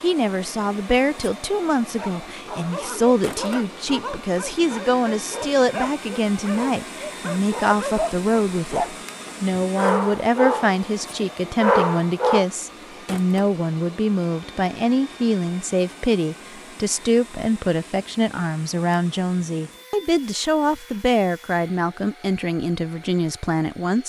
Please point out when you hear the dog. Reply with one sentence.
You can hear the dog from 1.9 to 8.9 s and from 9.6 to 12.4 s.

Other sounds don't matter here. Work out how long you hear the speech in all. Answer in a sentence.
You can hear the speech for 24 seconds altogether.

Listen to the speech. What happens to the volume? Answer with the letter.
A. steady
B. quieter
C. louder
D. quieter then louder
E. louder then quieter
A.